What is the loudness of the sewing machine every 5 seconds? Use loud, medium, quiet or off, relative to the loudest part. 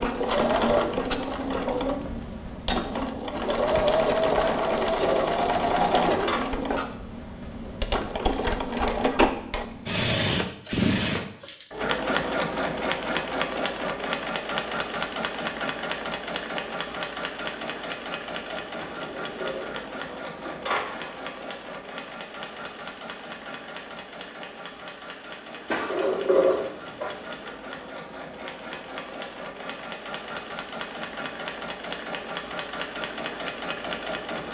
loud, loud, loud, medium, quiet, quiet, medium.